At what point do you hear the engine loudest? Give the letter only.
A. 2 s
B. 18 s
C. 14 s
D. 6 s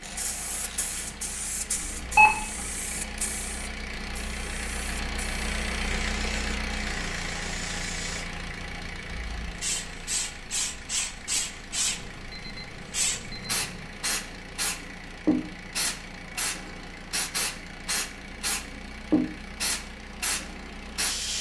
D.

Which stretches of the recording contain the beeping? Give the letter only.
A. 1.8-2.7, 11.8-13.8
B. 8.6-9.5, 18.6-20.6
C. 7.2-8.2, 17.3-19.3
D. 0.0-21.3
A.